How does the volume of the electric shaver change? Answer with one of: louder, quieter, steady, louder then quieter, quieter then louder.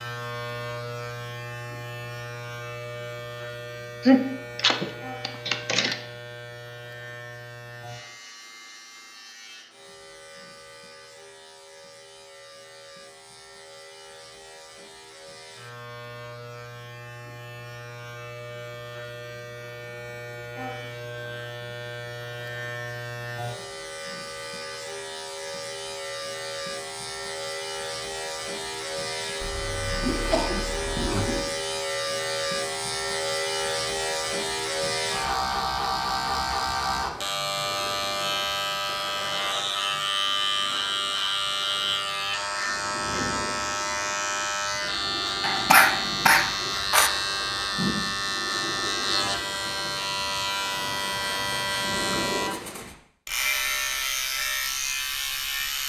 louder.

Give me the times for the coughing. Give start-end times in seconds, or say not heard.
4.0-6.0, 29.4-31.4, 45.4-47.1.